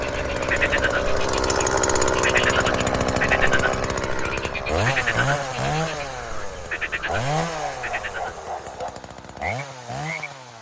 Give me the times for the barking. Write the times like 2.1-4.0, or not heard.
7.0-9.0.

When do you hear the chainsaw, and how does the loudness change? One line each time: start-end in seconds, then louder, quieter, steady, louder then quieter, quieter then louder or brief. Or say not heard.
0.0-10.5 quieter.